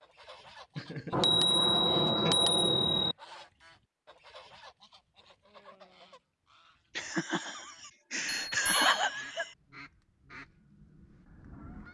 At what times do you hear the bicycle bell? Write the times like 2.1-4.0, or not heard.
1.1-3.1, 8.4-8.9.